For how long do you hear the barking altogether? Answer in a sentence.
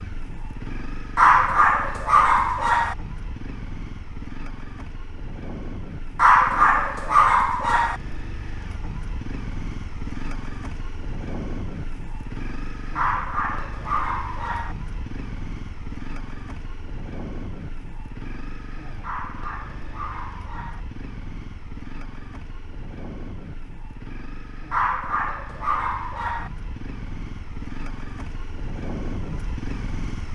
The barking can be heard for 9 seconds in total.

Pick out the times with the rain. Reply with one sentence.
The rain can't be heard in this clip.